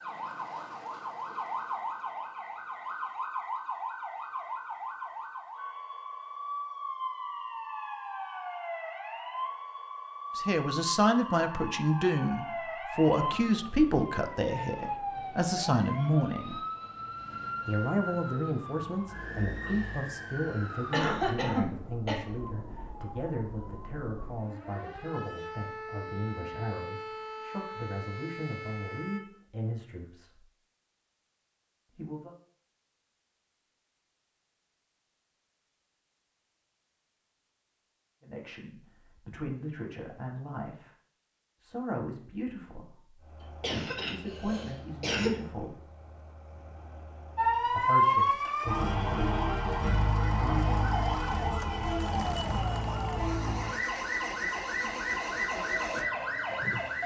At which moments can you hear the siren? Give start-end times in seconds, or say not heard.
0.0-29.2, 47.4-57.0.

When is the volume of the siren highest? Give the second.
48 s.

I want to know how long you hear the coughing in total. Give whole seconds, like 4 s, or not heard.
3 s.